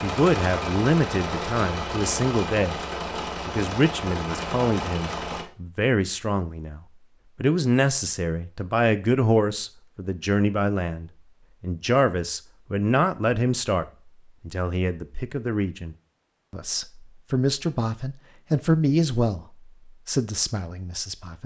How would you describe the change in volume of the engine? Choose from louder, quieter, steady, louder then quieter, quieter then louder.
steady.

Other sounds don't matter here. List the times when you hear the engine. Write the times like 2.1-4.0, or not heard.
0.0-5.5.